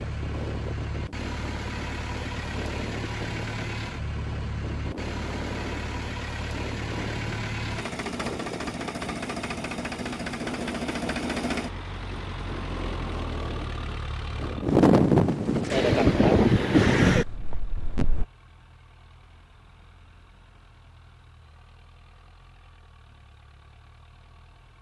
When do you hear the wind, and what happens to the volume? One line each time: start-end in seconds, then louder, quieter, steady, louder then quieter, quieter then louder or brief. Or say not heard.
0.0-18.2 louder.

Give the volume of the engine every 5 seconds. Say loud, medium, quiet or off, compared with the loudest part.
loud, loud, loud, quiet, quiet.